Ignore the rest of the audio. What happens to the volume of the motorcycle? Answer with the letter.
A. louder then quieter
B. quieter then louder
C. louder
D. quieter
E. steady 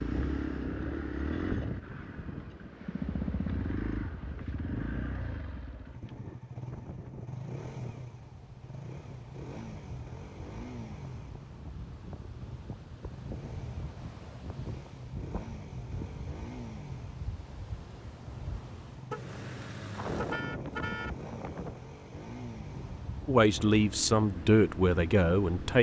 D.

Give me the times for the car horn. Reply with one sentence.
The car horn can be heard from 19.1 to 21.1 s.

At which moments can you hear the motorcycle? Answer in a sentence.
The motorcycle can be heard from 0.0 to 25.7 s.